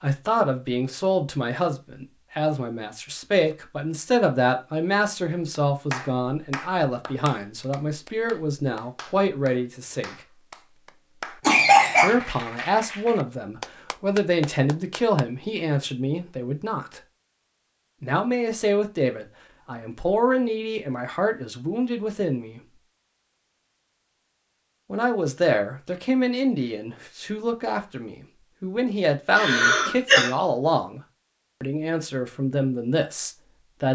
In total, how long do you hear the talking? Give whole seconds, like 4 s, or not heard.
28 s.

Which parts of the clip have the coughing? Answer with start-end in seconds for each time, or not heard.
11.4-12.2, 29.4-30.3.